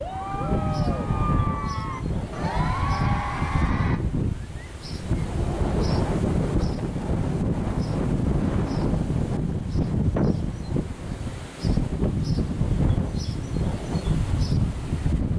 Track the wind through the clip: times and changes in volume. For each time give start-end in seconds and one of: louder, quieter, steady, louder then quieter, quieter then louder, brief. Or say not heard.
0.0-15.3 steady.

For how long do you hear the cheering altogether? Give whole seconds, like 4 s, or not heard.
4 s.